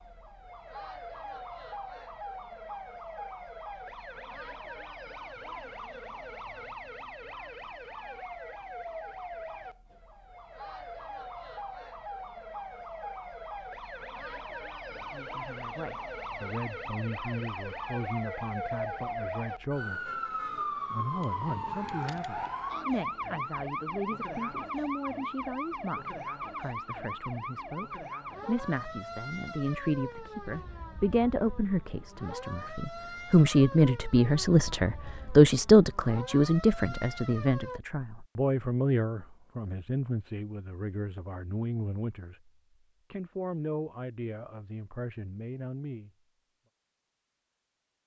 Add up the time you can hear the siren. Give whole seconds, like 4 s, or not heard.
38 s.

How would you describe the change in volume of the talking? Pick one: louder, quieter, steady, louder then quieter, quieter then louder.
louder then quieter.